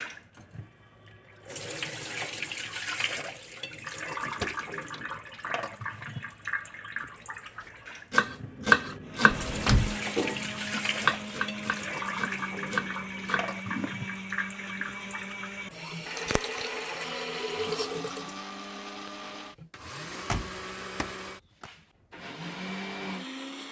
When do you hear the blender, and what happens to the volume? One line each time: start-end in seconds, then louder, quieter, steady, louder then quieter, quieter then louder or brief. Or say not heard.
9.0-23.6 steady.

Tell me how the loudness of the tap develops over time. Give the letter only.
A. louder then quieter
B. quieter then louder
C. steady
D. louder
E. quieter
C.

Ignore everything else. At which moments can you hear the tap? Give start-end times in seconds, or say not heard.
0.0-19.7.